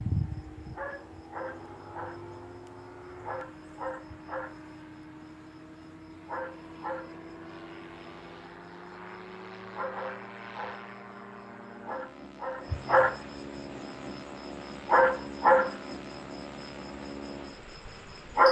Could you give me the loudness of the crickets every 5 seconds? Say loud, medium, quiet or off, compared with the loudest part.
quiet, quiet, medium, loud.